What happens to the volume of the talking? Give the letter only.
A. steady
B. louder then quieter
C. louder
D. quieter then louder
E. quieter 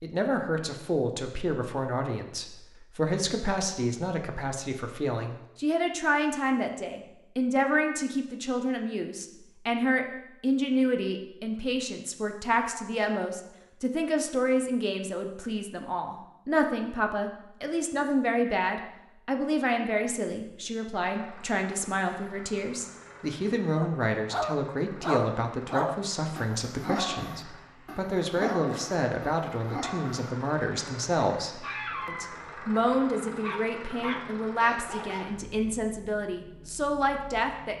A.